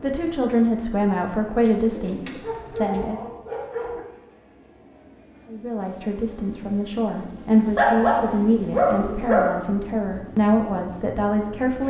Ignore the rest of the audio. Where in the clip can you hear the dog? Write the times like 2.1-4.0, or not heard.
2.4-4.0, 7.8-9.6.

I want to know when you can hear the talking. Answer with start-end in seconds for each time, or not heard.
0.0-3.3, 5.5-11.8.